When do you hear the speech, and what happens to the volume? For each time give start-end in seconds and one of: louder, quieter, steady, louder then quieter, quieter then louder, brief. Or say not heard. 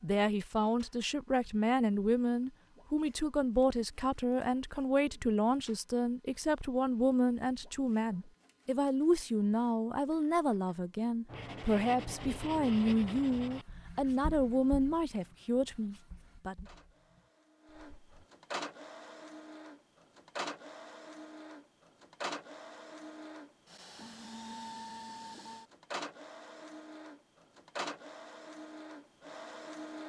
0.0-16.6 steady.